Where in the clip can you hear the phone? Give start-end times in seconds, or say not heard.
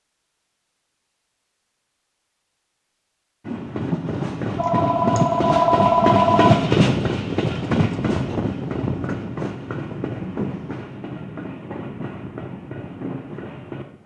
4.5-6.6.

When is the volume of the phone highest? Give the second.
6 s.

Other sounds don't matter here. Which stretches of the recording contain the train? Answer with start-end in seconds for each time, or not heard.
3.5-14.0.